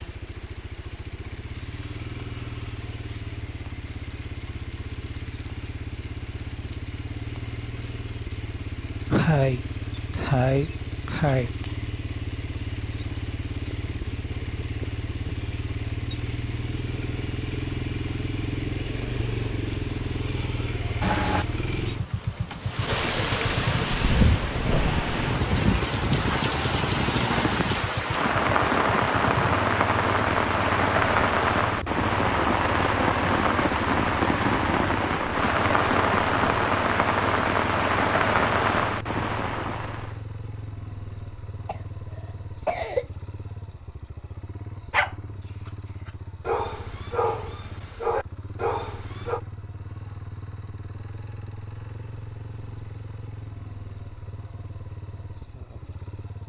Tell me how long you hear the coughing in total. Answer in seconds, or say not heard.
4 s.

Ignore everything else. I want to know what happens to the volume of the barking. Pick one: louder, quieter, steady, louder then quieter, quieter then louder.
louder.